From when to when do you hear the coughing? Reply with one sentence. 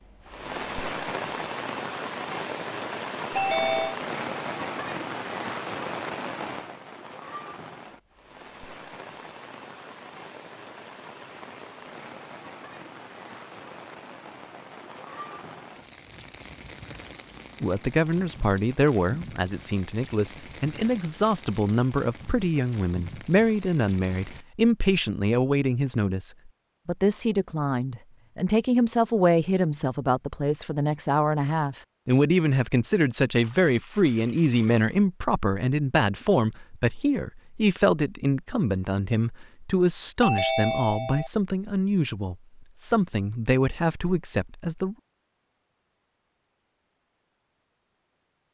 You can't hear the coughing here.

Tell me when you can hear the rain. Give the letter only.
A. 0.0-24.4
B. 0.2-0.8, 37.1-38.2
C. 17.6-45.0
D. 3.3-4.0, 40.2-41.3
A.